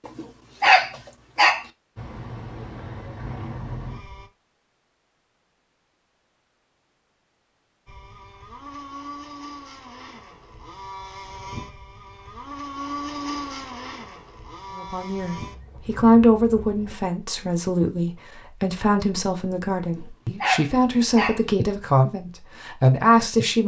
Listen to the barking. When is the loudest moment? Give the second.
1 s.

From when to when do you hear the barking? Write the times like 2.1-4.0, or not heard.
0.1-1.6, 19.8-21.4.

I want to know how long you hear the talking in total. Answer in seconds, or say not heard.
9 s.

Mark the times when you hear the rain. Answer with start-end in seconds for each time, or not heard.
not heard.